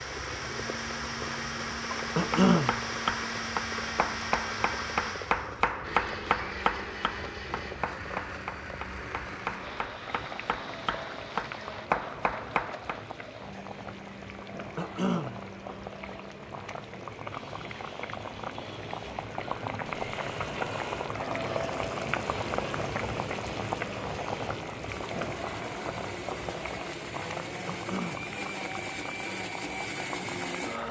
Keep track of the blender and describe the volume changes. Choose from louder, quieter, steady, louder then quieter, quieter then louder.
quieter then louder.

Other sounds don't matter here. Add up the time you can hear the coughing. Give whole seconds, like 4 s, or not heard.
2 s.